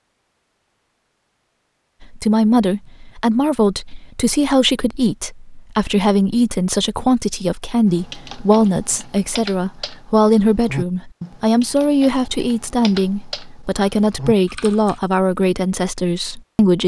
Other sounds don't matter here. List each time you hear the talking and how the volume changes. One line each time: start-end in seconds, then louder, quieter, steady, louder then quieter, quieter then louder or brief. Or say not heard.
2.0-16.8 steady.